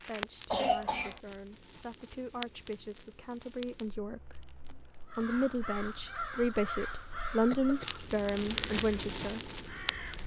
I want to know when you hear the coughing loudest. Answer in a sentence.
The volume of the coughing peaks at 1 second.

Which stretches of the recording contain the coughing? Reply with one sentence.
You can hear the coughing from 0.5 to 1.2 s and from 7.5 to 8.1 s.